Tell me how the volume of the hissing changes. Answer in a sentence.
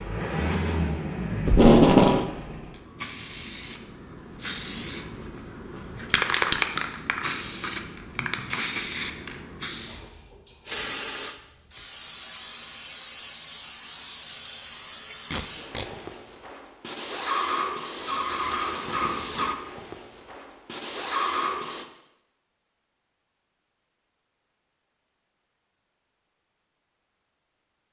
The volume of the hissing goes down, then up.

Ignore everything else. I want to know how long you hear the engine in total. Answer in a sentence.
You can hear the engine for 3 seconds altogether.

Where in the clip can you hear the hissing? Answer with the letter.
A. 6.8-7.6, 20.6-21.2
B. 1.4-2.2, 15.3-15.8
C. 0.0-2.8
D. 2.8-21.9
D.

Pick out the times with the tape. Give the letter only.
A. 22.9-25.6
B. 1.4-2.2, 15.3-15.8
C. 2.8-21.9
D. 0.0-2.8
B.